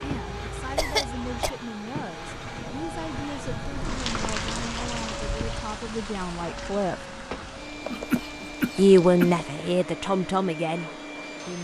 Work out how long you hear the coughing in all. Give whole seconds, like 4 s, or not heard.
3 s.